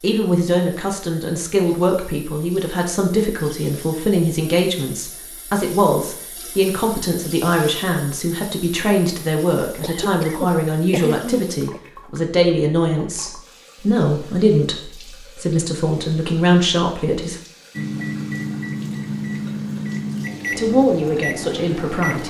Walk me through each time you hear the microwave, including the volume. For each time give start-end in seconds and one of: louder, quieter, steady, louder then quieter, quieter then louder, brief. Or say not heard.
17.8-22.2 steady.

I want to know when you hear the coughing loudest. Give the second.
11 s.